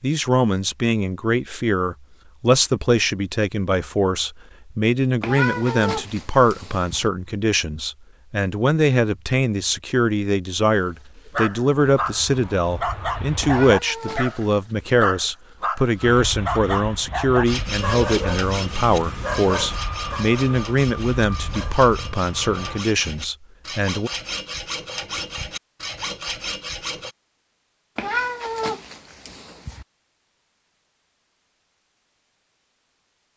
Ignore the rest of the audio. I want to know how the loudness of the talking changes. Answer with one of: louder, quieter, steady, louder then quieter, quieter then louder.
steady.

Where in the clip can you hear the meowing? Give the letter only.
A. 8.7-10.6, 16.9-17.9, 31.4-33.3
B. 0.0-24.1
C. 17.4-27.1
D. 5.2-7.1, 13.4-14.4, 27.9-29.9
D.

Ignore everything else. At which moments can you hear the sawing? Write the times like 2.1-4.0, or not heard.
17.4-27.1.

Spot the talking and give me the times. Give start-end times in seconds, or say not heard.
0.0-24.1.